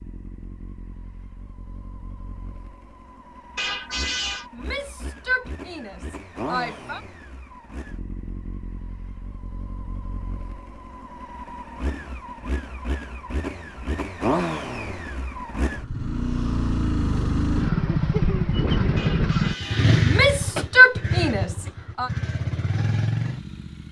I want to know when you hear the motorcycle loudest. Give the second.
20 s.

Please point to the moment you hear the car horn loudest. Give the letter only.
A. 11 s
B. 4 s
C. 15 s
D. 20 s
B.